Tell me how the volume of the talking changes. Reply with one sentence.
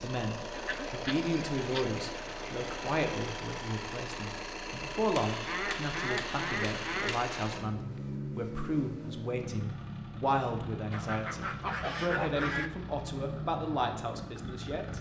The loudness of the talking stays about the same.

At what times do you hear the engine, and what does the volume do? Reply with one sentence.
The engine can be heard from 0.0 to 14.9 s, at a steady volume.